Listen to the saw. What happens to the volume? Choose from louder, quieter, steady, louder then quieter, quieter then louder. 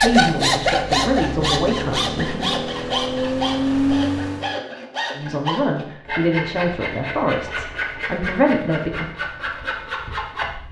quieter.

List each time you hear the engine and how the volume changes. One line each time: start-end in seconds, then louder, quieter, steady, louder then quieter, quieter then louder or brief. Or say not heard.
0.0-4.6 louder.